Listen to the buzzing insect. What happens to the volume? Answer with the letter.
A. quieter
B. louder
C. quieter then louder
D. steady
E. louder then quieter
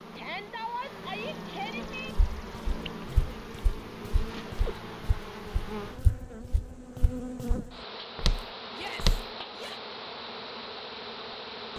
D.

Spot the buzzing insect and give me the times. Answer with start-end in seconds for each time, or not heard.
0.0-11.7.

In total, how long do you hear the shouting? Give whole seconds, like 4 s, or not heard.
3 s.